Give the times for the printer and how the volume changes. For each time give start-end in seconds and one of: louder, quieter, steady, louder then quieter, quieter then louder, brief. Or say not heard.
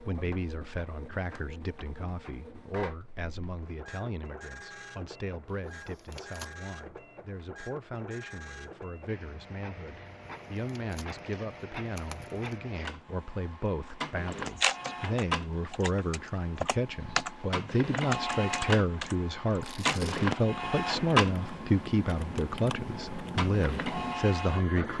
0.0-24.9 louder.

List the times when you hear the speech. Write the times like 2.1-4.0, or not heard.
0.1-24.9.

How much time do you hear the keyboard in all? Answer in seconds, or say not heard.
10 s.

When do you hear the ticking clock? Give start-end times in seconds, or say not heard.
not heard.